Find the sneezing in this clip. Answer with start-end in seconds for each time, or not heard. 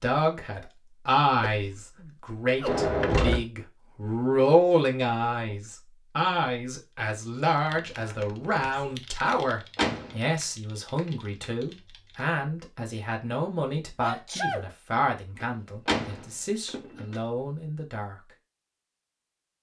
1.4-2.9, 7.9-9.0, 13.9-14.7.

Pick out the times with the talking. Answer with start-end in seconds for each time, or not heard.
0.0-18.3.